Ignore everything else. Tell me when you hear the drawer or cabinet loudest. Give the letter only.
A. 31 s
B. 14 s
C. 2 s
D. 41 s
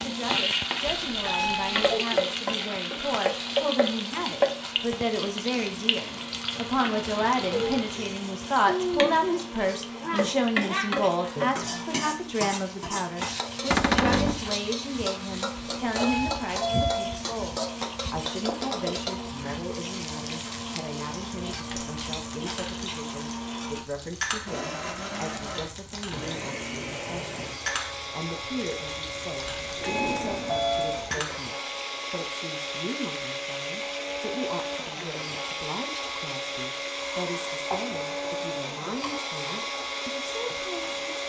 B.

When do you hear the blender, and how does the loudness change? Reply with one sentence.
You can hear the blender from 0.0 to 41.2 s, getting louder.